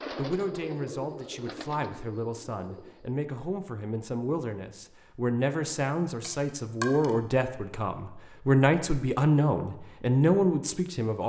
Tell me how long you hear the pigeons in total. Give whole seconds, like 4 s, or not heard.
3 s.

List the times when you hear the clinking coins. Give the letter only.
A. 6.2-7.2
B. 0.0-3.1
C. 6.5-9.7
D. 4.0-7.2
A.